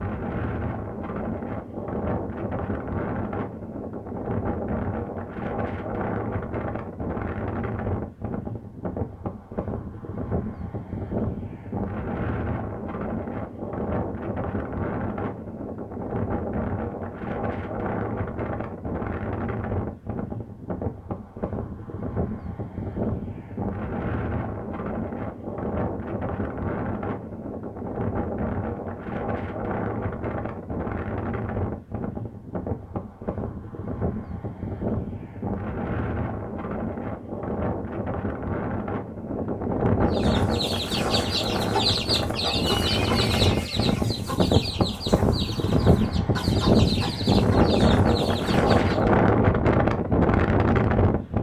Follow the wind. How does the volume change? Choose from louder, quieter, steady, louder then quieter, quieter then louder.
louder.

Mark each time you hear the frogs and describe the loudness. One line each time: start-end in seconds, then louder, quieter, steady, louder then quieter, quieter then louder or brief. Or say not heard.
not heard.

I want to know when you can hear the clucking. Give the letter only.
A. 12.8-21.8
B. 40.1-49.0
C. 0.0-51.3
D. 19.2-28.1
B.